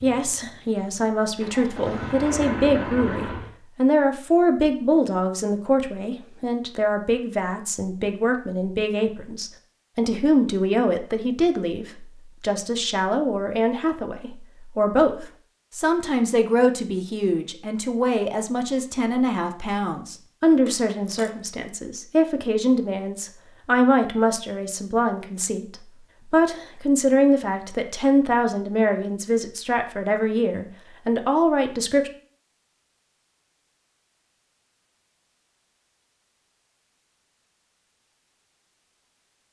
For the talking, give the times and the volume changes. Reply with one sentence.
You can hear the talking from 0.0 to 32.1 s, at a steady volume.